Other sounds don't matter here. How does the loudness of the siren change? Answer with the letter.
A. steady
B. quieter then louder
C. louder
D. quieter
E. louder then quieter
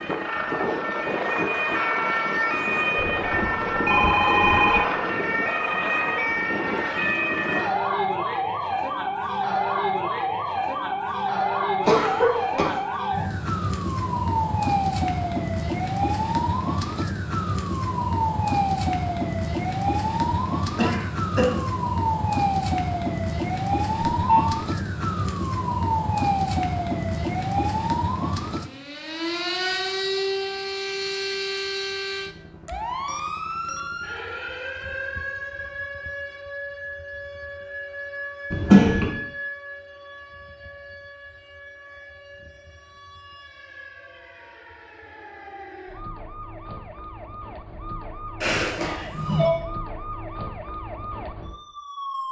D.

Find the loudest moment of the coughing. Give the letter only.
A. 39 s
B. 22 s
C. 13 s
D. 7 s
A.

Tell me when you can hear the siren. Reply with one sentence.
You can hear the siren from 0.0 to 52.2 s.